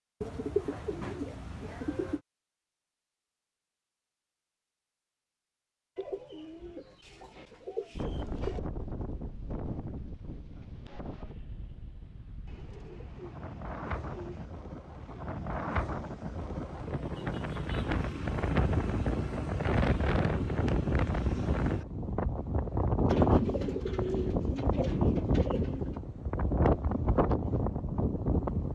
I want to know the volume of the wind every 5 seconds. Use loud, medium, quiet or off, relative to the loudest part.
off, medium, quiet, loud, loud, loud.